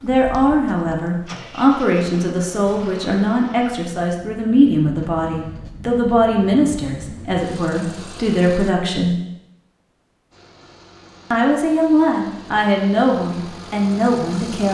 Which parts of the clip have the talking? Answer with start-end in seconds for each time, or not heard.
0.0-9.2, 11.3-14.6.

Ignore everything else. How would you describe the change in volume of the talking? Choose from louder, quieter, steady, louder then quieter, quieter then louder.
steady.